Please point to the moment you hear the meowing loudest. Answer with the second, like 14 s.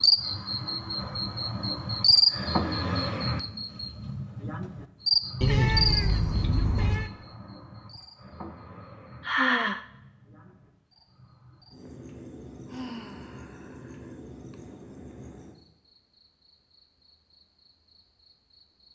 6 s.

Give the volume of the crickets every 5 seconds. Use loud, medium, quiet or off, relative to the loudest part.
loud, medium, quiet, quiet.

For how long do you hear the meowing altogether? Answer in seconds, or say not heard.
2 s.